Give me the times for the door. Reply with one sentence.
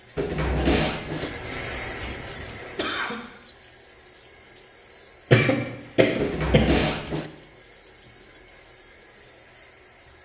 You can hear the door from 0.1 to 1.3 s and from 6.2 to 7.3 s.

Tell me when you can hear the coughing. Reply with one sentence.
The coughing can be heard from 1.1 to 3.1 s and from 5.3 to 6.8 s.